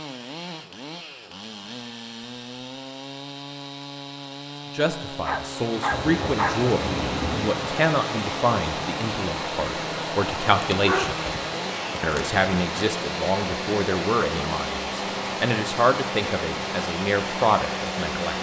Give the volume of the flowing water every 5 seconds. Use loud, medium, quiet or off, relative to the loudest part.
off, loud, loud, loud.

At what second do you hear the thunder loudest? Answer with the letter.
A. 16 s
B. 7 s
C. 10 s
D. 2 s
B.